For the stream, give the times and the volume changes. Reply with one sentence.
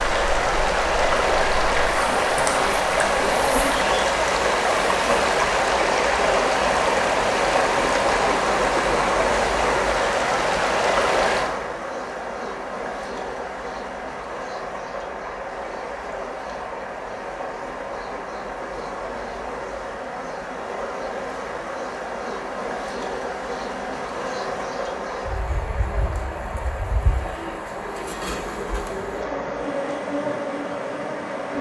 You can hear the stream from 0.0 to 31.5 s, getting quieter.